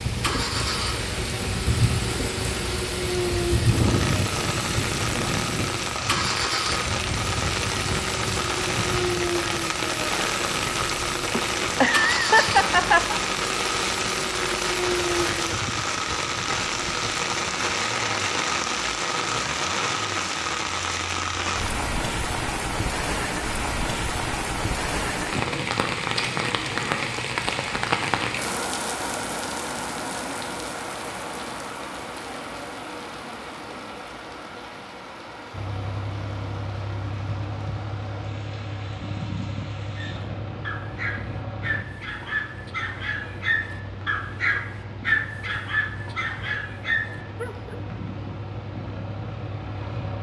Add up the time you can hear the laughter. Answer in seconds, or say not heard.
2 s.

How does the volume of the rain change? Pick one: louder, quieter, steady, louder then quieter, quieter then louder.
quieter.